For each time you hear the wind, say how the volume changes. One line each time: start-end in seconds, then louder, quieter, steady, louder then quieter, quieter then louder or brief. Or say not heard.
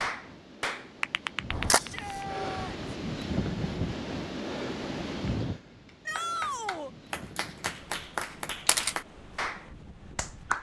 0.0-10.5 louder then quieter.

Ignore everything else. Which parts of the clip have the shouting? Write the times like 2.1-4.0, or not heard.
1.8-2.8, 6.0-6.9.